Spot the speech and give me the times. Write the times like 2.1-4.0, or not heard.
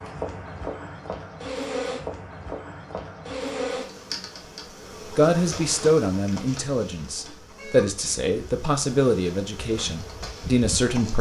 5.1-11.1.